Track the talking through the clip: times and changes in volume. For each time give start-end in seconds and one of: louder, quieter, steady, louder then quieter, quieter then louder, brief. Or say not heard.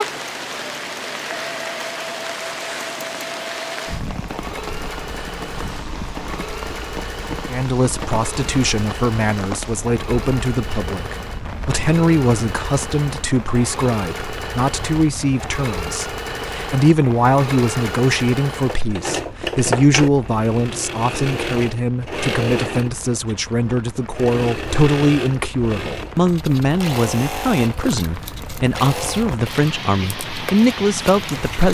7.5-31.6 steady.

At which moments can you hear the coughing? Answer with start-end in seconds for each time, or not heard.
not heard.